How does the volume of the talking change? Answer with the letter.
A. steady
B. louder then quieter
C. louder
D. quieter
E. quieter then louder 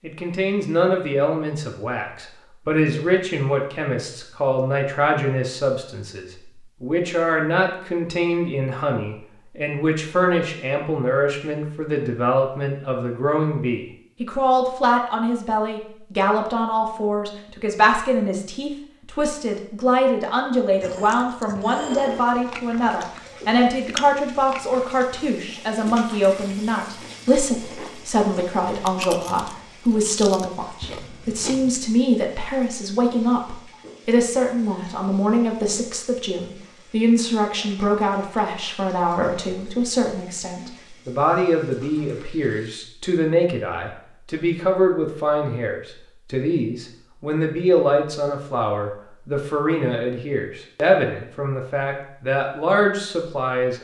A.